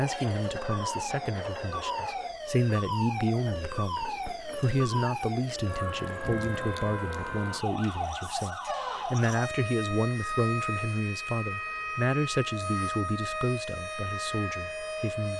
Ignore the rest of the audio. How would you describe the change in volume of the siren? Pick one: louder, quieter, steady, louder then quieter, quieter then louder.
steady.